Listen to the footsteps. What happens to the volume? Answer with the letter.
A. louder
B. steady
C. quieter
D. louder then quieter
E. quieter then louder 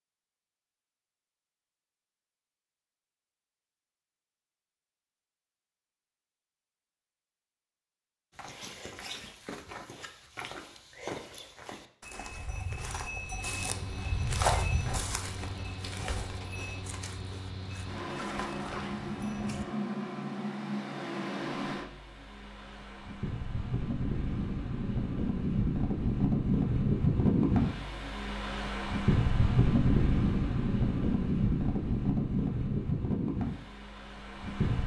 D.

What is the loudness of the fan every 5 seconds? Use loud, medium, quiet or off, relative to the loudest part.
off, off, quiet, medium, medium, loud, loud.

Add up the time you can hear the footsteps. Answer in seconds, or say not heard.
11 s.